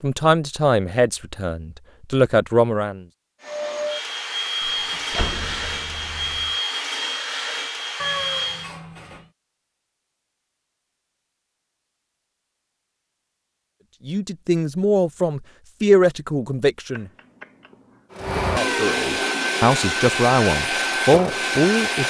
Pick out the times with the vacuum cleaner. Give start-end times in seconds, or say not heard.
3.4-8.7, 18.1-22.0.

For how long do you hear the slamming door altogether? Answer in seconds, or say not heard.
2 s.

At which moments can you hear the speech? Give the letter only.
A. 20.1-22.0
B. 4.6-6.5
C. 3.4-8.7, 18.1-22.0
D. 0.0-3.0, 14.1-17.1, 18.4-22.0
D.